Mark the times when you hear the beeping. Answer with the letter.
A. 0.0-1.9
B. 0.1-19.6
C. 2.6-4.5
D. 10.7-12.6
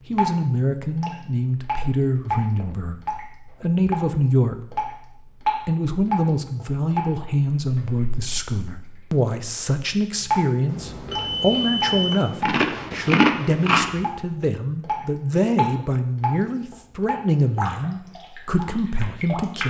D.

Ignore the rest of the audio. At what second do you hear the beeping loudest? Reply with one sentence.
The loudest moment of the beeping is at 12 seconds.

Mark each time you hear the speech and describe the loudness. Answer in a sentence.
You can hear the speech from 0.1 to 19.6 s, at a steady volume.